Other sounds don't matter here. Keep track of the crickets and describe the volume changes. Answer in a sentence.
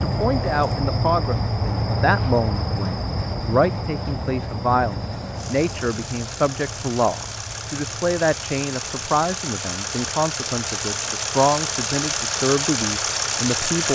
The loudness of the crickets goes down.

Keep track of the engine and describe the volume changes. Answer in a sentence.
The loudness of the engine goes up.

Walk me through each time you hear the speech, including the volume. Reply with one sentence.
The speech can be heard from 0.0 to 13.9 s, at a steady volume.